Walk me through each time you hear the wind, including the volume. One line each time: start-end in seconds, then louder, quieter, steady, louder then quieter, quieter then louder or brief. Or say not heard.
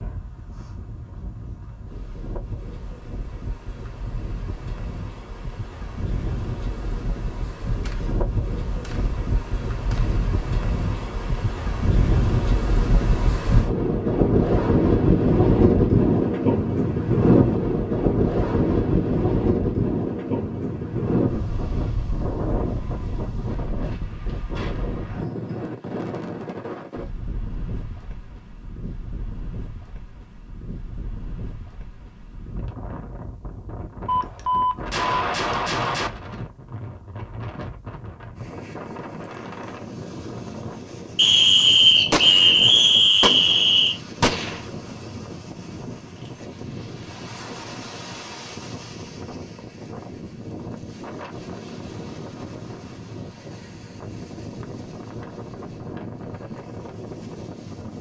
0.0-57.9 louder then quieter.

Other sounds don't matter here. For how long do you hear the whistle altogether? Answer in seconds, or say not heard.
3 s.